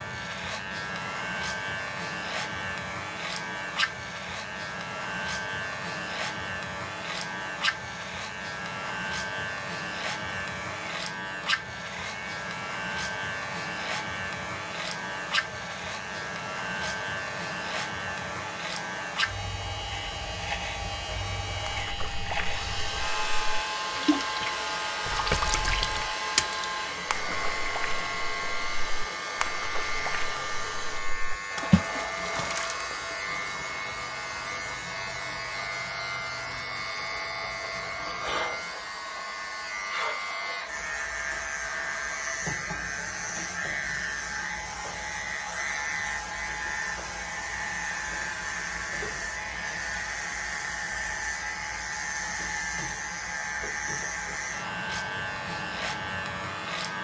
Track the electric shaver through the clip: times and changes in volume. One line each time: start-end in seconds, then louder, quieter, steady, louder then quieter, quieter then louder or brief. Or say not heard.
0.0-56.9 steady.